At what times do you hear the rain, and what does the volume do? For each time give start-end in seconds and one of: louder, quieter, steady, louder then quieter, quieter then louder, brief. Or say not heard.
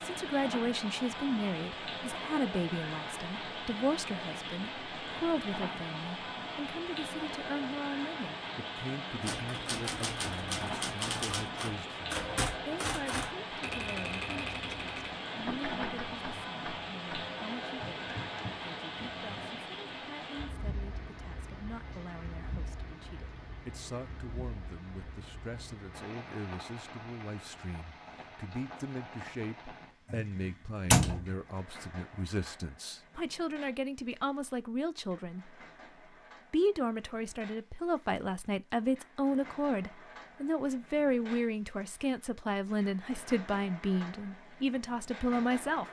0.0-45.8 quieter.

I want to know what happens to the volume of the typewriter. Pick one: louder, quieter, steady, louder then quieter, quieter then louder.
quieter.